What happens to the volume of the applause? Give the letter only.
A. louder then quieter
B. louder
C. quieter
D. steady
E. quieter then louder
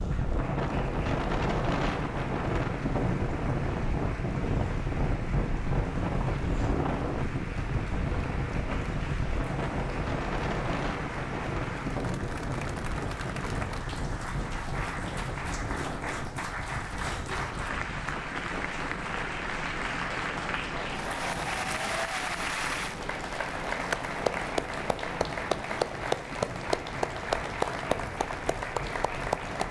B.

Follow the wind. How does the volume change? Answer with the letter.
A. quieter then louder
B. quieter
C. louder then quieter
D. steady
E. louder
B.